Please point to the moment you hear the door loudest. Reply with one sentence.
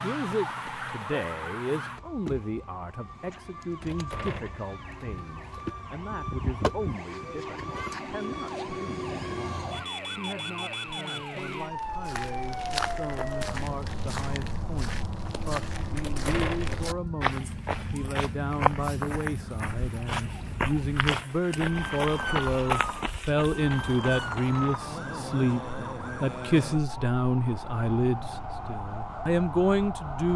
The loudest moment of the door is at 16 seconds.